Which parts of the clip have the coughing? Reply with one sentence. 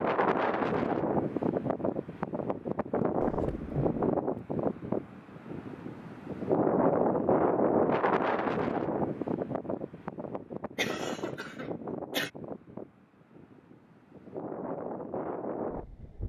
You can hear the coughing from 3.2 to 4.0 s and from 10.8 to 12.3 s.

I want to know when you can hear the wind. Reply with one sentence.
The wind can be heard from 0.0 to 16.2 s.